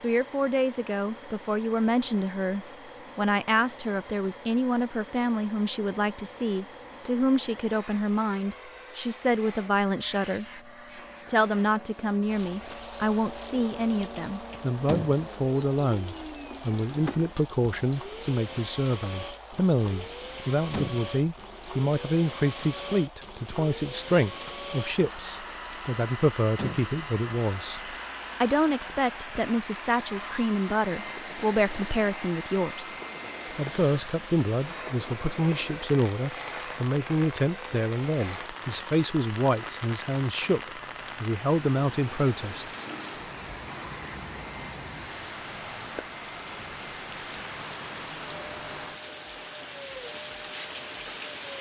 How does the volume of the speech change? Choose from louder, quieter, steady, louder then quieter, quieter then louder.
steady.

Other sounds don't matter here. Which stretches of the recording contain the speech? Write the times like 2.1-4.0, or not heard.
0.0-10.4, 11.2-42.7.